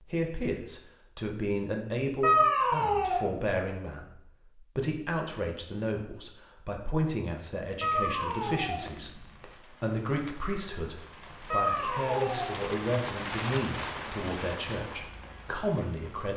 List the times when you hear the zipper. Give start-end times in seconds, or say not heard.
not heard.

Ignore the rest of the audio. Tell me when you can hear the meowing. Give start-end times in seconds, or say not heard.
2.2-3.4, 7.8-8.9, 11.5-12.6.